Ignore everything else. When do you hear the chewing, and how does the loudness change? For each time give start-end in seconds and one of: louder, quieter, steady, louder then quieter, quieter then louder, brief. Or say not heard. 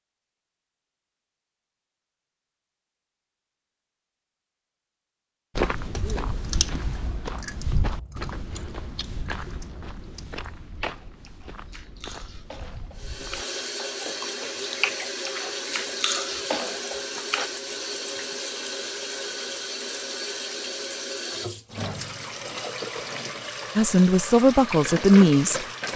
6.0-17.5 quieter then louder.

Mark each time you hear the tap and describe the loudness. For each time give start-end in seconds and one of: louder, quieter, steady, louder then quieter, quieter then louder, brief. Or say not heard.
12.9-25.9 steady.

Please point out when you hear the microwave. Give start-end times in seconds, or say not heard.
not heard.